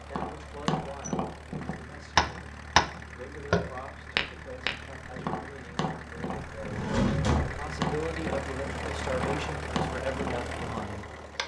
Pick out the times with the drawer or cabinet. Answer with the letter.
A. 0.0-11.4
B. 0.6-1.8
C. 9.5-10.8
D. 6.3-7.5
D.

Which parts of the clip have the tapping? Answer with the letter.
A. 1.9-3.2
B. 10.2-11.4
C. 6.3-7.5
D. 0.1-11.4
D.